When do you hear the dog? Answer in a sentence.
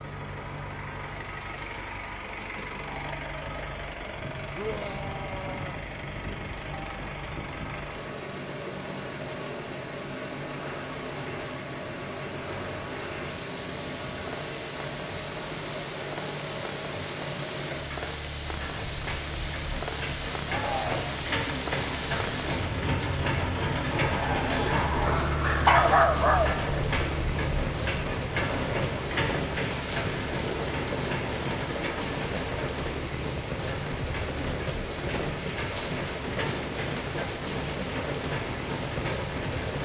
The dog can be heard from 24.1 to 26.6 s.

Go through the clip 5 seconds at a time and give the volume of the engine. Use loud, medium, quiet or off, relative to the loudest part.
medium, medium, medium, medium, loud, loud, medium, medium.